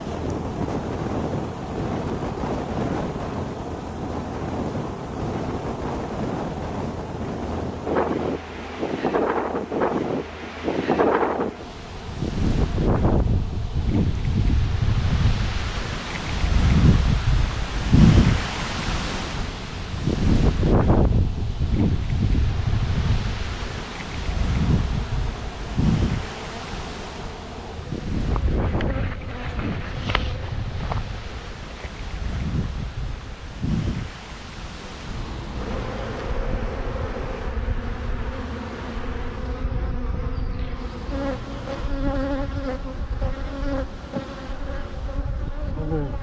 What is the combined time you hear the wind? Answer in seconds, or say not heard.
46 s.